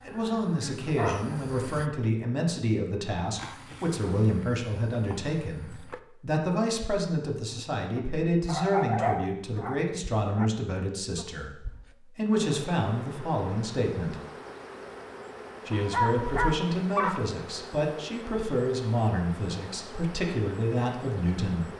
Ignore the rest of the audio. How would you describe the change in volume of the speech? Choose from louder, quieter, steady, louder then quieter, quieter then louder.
steady.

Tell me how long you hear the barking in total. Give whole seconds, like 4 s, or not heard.
5 s.